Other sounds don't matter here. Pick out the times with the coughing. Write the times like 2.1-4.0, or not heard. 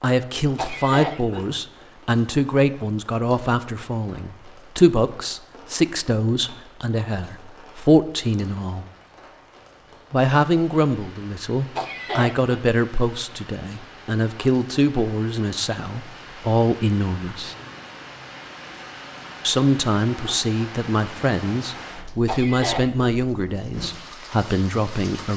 0.6-1.4, 11.8-12.6, 22.2-23.1.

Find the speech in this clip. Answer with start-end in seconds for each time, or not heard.
0.0-8.8, 10.1-17.6, 19.4-25.3.